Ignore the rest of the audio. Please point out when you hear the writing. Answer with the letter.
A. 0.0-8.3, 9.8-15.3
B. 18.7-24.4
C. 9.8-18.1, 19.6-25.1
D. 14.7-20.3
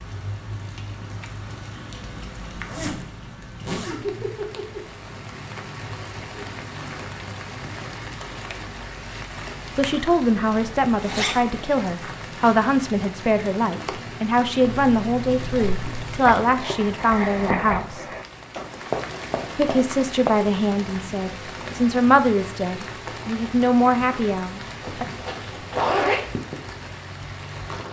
D.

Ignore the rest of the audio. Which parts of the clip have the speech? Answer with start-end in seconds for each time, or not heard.
9.8-18.1, 19.6-25.1.